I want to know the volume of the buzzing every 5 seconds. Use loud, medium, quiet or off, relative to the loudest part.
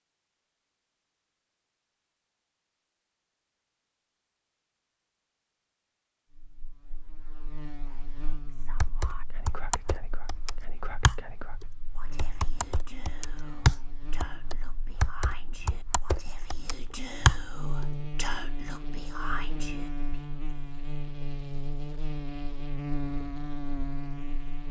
off, quiet, quiet, loud, loud.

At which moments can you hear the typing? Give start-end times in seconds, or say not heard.
8.8-17.9.